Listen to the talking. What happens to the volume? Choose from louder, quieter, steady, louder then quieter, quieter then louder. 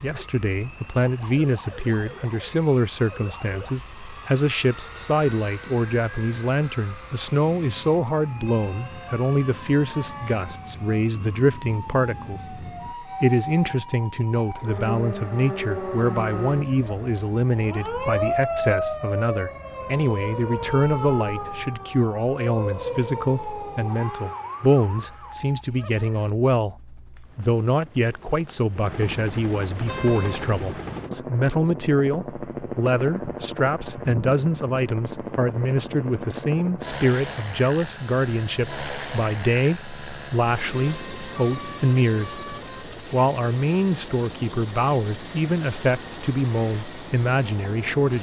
steady.